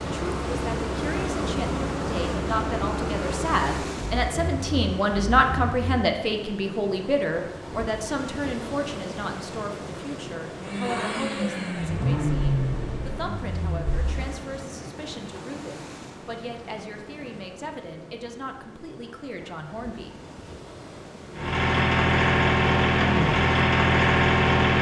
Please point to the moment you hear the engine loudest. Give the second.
24 s.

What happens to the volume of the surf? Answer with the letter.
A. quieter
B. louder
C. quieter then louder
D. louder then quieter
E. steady
A.